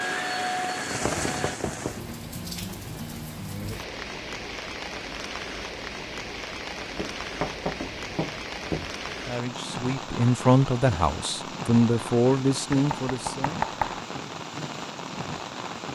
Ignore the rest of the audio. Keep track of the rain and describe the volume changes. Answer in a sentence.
The volume of the rain stays about the same.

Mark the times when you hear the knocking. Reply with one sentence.
The knocking can be heard from 1.1 to 2.0 s, from 7.0 to 8.9 s and from 12.7 to 14.0 s.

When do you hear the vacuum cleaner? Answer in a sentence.
The vacuum cleaner can be heard from 0.0 to 1.6 s.